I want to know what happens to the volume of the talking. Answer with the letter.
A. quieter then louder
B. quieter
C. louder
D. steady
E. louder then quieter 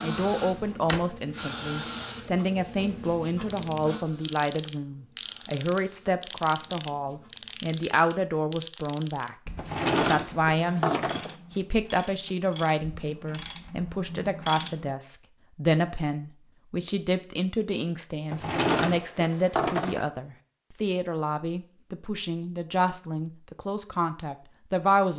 D.